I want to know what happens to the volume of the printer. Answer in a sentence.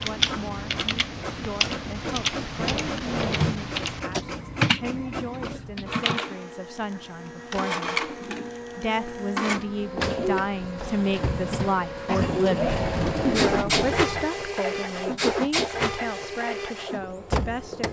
The volume of the printer goes up.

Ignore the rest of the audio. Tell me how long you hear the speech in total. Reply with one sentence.
The speech can be heard for 17 seconds in total.